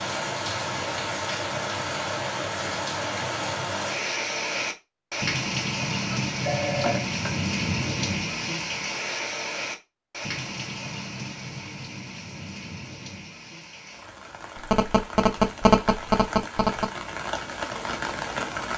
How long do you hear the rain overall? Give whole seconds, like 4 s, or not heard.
19 s.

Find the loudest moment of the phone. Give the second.
16 s.